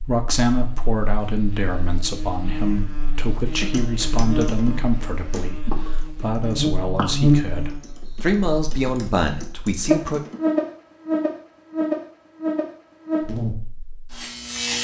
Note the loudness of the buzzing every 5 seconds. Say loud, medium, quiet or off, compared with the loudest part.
medium, loud, loud.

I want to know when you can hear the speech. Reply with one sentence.
The speech can be heard from 0.0 to 10.2 s.